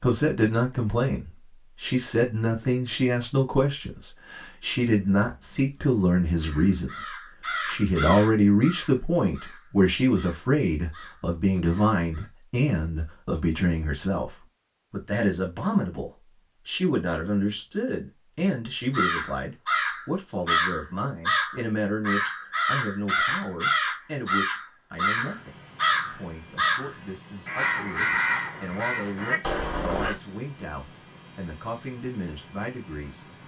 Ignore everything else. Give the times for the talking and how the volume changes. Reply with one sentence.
The talking can be heard from 0.0 to 33.2 s, getting quieter.